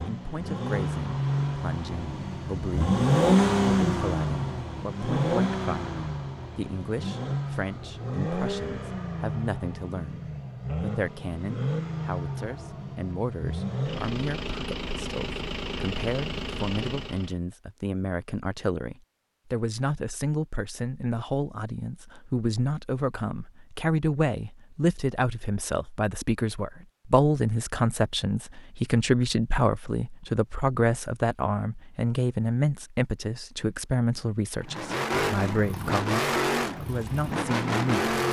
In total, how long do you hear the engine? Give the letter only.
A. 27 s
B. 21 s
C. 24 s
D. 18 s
B.